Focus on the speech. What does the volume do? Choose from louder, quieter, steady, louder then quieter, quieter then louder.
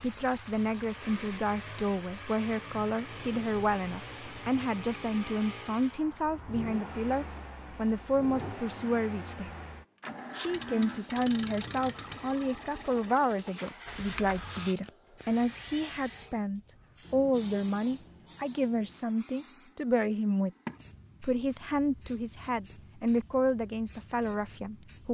steady.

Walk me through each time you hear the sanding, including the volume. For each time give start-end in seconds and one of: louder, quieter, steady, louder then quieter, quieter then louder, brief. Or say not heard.
not heard.